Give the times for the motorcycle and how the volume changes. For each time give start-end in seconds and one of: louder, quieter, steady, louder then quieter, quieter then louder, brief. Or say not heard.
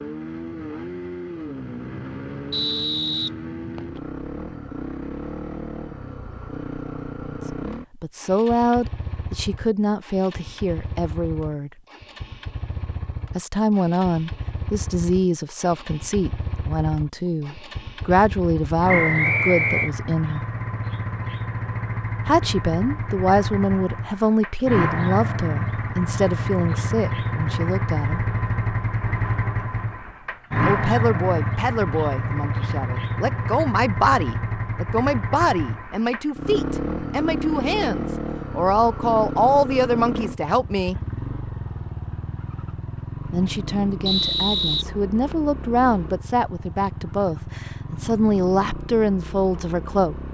0.0-50.2 louder then quieter.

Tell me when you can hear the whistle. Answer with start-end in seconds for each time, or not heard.
2.5-4.0, 18.9-19.9, 44.0-45.4.